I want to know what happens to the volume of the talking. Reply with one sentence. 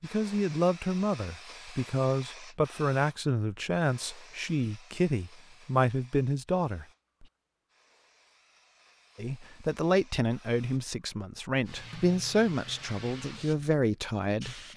The volume of the talking stays about the same.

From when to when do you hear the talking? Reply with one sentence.
You can hear the talking from 0.0 to 7.2 s and from 9.2 to 14.7 s.